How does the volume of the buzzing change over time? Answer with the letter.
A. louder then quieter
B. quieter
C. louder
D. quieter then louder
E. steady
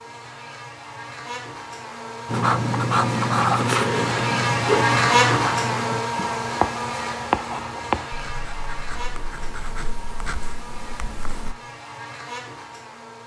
A.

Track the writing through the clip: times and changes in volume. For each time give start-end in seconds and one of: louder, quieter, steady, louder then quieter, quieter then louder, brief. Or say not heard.
2.2-11.6 quieter.